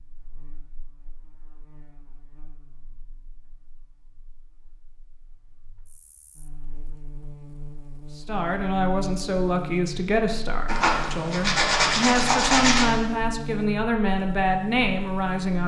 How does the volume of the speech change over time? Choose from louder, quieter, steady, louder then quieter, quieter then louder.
steady.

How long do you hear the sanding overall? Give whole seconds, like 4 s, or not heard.
2 s.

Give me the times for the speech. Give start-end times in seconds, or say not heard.
8.2-15.6.